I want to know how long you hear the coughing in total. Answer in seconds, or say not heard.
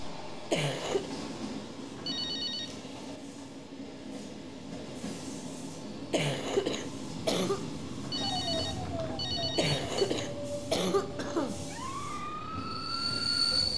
4 s.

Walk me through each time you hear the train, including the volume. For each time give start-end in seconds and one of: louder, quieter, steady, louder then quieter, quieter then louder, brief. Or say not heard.
0.0-13.7 steady.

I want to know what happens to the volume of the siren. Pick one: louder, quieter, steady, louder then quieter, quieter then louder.
steady.